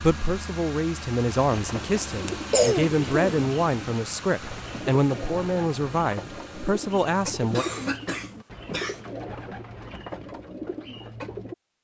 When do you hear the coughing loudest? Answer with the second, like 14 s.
3 s.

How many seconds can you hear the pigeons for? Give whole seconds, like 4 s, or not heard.
10 s.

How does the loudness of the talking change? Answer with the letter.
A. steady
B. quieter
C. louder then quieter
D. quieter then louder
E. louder
A.